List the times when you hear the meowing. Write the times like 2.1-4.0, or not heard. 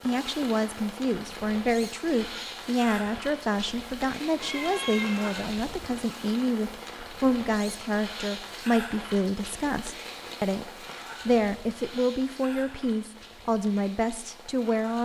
4.3-5.5.